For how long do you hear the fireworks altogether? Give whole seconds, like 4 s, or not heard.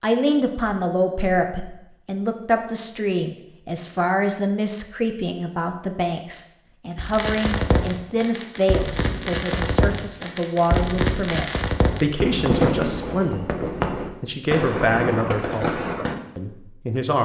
9 s.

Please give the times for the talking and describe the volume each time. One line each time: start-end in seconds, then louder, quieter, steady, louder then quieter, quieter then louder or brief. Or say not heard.
0.0-17.1 steady.